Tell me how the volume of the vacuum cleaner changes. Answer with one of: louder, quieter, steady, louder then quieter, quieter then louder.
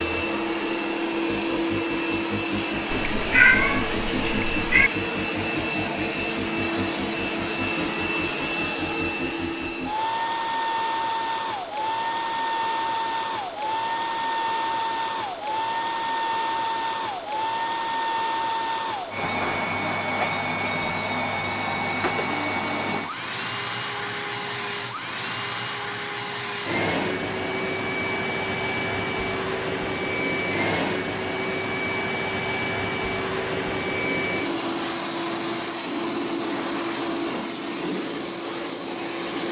steady.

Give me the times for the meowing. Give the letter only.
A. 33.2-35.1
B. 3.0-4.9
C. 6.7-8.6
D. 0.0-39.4
B.